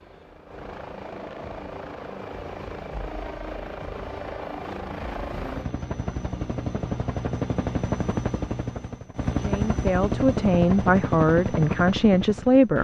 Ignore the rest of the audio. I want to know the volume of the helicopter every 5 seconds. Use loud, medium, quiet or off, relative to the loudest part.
medium, loud, loud.